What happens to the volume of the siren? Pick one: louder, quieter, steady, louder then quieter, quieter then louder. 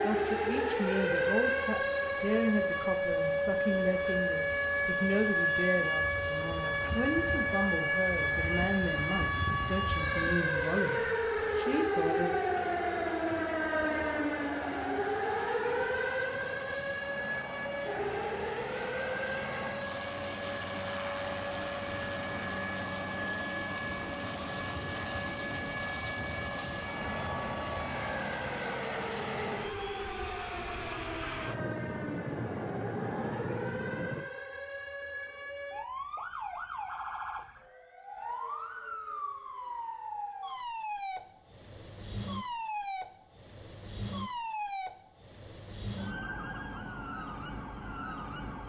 quieter.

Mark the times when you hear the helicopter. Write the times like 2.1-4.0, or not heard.
0.0-34.3.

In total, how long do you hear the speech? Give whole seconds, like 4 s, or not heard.
12 s.